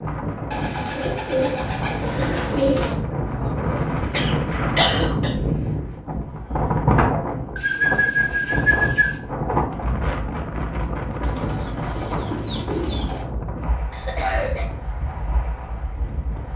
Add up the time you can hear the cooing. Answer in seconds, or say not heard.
6 s.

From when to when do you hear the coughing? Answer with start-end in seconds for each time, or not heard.
4.1-5.3, 13.9-14.7.